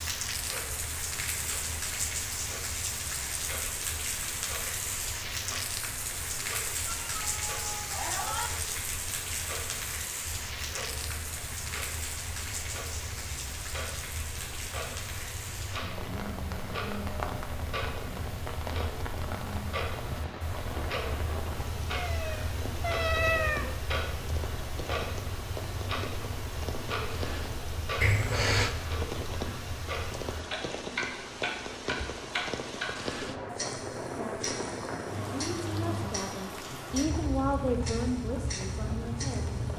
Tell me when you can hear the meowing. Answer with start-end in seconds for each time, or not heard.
6.8-8.5, 21.9-23.8, 28.0-28.8.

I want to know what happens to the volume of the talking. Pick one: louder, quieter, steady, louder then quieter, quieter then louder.
louder then quieter.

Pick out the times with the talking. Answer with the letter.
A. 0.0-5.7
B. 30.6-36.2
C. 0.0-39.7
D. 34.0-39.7
D.